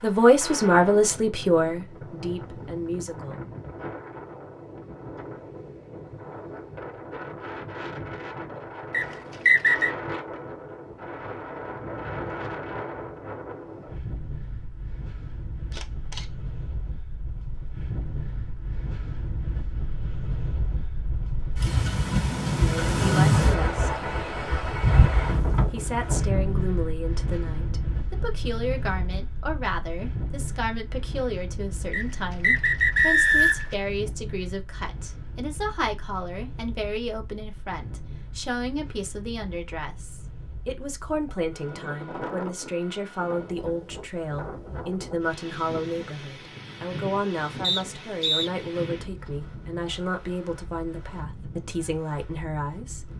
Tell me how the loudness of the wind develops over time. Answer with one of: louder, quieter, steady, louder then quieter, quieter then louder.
louder then quieter.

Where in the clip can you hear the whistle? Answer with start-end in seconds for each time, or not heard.
8.9-9.9, 31.9-33.8, 47.6-48.5.